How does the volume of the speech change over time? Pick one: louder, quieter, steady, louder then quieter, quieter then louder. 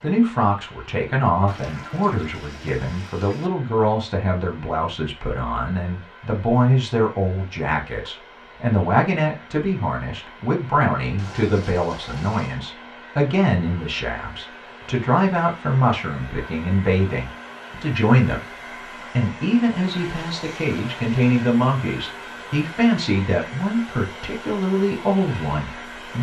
steady.